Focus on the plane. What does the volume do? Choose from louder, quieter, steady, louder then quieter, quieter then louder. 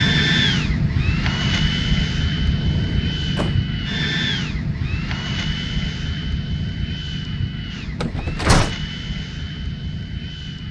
quieter.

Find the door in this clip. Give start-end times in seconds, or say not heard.
2.5-3.6, 8.0-8.8.